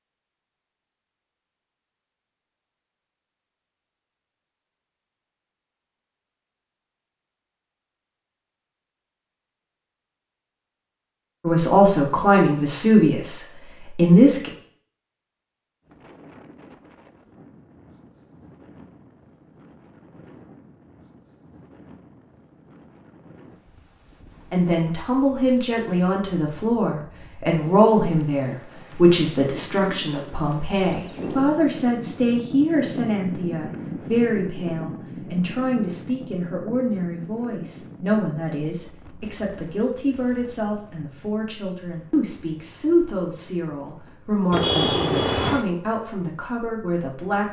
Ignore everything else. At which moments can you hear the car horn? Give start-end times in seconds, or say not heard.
44.5-45.6.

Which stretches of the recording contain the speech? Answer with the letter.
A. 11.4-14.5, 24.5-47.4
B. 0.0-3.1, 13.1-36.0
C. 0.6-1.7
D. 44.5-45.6
A.